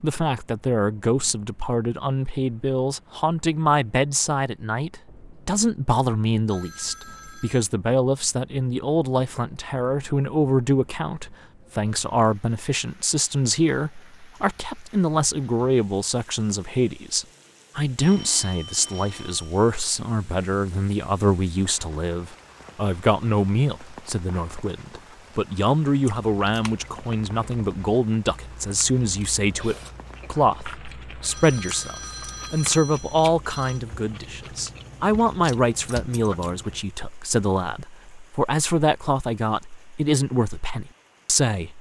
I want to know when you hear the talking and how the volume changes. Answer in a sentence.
You can hear the talking from 0.0 to 41.7 s, at a steady volume.